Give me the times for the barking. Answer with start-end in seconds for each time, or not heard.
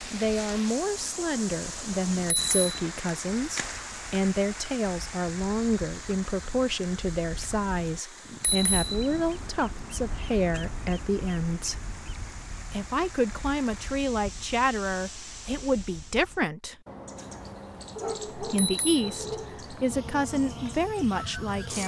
17.9-19.6.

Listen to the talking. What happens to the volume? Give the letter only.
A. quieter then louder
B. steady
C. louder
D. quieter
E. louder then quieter
B.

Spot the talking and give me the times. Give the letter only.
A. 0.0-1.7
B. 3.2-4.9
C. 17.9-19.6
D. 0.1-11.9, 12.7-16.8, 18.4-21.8
D.